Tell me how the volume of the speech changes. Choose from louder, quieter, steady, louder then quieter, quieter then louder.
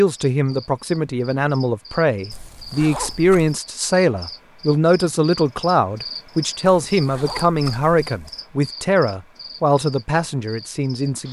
steady.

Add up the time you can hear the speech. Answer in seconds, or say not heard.
11 s.